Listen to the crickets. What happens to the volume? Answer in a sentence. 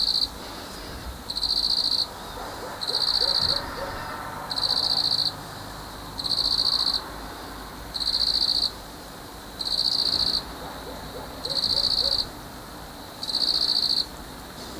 The volume of the crickets stays about the same.